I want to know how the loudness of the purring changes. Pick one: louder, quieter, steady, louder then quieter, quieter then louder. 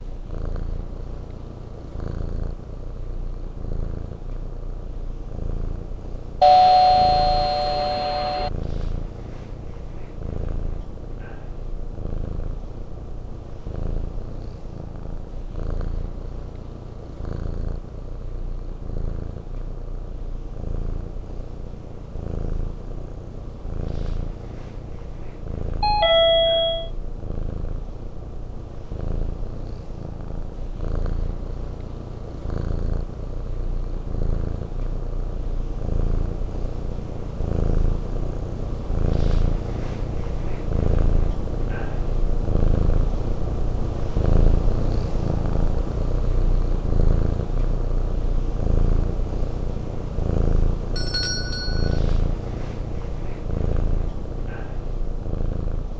louder.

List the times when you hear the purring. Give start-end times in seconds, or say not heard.
0.0-55.9.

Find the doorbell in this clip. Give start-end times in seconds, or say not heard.
6.4-8.5, 25.8-26.9, 51.0-52.0.